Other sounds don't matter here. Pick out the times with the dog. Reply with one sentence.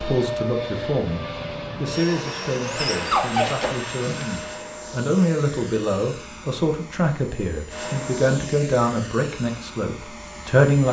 The dog can be heard from 2.8 to 4.4 s.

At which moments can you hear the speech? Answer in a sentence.
The speech can be heard from 0.0 to 10.8 s.